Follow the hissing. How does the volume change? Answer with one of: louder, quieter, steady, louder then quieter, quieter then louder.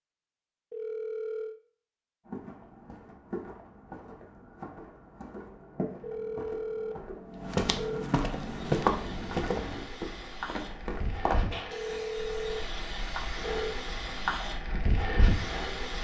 louder.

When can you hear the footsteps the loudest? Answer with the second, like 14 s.
9 s.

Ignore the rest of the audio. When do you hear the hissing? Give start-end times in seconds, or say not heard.
8.2-15.9.